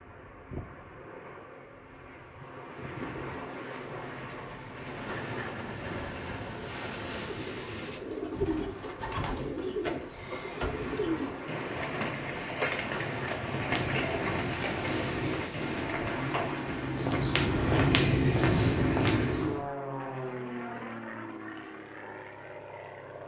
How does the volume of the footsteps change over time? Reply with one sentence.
The loudness of the footsteps goes up.